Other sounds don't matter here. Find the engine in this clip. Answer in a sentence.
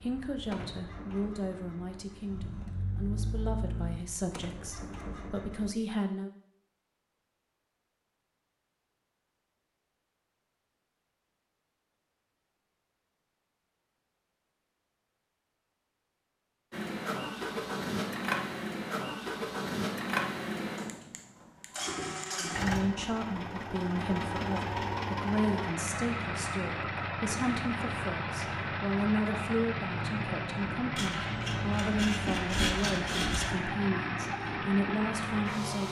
The engine can be heard from 0.0 to 5.8 s and from 16.7 to 35.8 s.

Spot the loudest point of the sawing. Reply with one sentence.
The loudest moment of the sawing is at 33 seconds.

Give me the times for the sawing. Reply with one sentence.
You can hear the sawing from 30.9 to 33.5 s.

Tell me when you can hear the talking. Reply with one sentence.
You can hear the talking from 0.0 to 6.3 s and from 22.4 to 35.8 s.